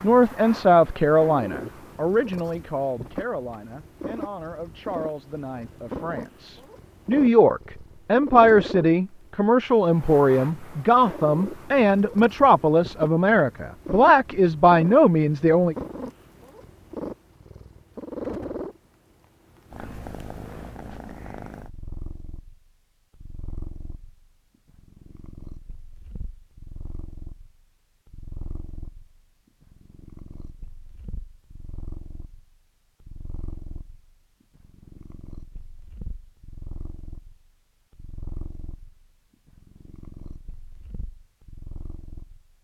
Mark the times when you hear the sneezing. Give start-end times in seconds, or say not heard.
not heard.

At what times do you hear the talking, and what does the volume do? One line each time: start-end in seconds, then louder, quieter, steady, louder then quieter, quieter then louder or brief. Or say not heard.
0.0-15.8 quieter then louder.